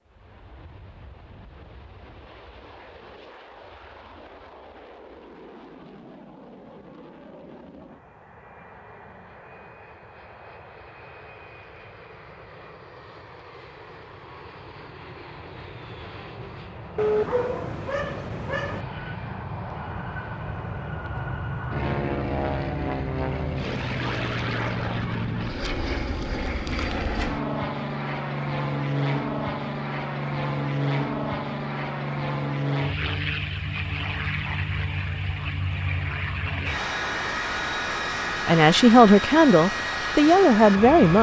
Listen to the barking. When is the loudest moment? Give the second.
17 s.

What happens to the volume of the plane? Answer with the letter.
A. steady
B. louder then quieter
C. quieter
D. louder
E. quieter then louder
D.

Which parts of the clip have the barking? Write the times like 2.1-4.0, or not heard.
16.9-18.9.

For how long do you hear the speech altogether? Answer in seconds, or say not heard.
3 s.